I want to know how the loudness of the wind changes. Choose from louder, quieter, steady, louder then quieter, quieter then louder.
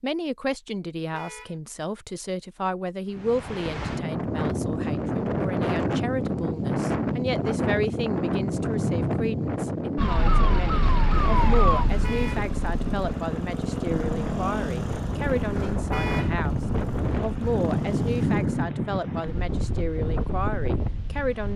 quieter then louder.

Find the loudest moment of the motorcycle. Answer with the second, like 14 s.
14 s.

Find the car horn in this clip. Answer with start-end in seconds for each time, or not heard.
1.1-1.6, 12.0-12.5, 15.9-16.4.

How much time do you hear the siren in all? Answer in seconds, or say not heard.
3 s.